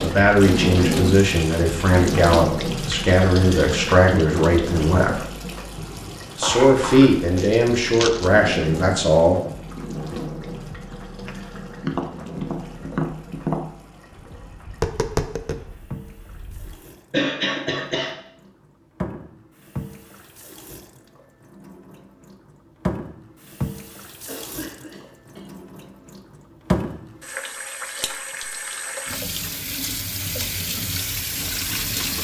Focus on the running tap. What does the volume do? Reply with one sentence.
The volume of the running tap goes down, then up.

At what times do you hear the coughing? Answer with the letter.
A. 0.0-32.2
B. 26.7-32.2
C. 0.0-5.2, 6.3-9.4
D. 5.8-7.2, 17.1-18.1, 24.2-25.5
D.